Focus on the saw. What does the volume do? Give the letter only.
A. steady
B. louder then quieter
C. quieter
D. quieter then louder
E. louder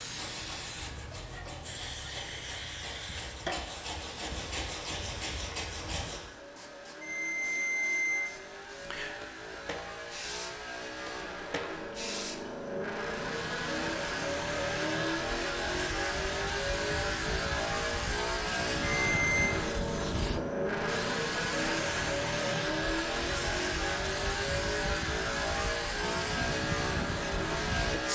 E.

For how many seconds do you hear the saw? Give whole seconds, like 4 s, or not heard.
6 s.